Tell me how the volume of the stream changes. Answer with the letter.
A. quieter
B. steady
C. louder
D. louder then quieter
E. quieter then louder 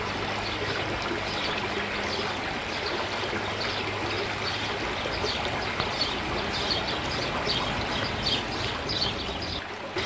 B.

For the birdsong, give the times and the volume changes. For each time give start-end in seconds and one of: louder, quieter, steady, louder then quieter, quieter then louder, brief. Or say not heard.
0.2-10.0 louder.